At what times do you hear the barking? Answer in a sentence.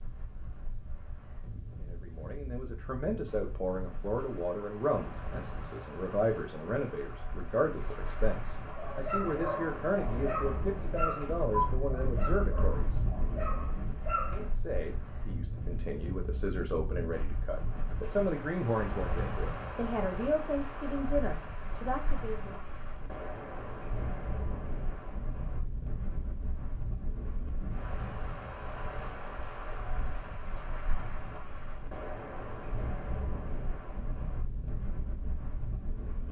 You can hear the barking from 8.7 to 14.5 s.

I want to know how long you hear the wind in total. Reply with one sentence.
The wind can be heard for 36 seconds in total.